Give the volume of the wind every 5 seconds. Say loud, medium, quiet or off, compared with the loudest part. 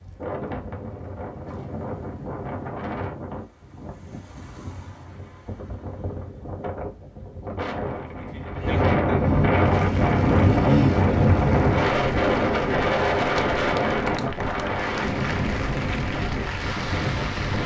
quiet, medium, loud, medium.